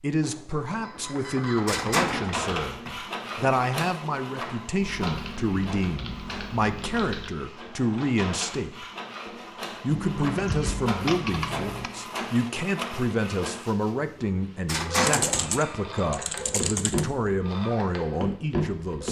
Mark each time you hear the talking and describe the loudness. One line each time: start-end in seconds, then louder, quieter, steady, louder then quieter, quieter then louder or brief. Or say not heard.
0.0-19.0 steady.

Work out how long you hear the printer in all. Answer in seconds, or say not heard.
19 s.